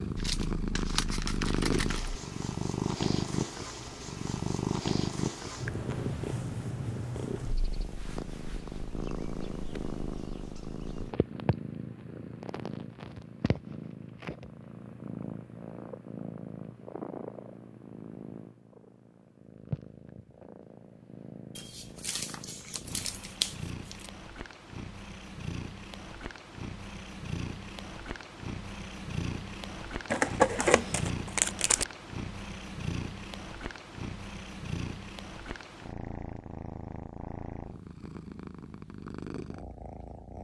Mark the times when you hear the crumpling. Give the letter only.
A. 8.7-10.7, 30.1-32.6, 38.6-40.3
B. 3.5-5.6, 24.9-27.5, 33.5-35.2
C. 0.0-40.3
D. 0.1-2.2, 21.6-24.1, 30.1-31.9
D.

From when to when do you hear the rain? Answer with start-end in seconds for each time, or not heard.
not heard.